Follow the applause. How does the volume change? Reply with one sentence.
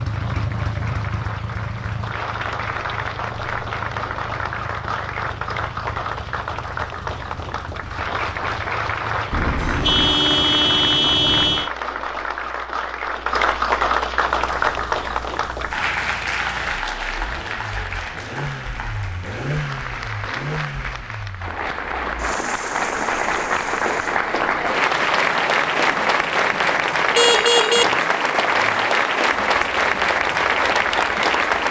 The loudness of the applause goes up.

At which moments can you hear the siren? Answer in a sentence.
The siren can't be heard in this clip.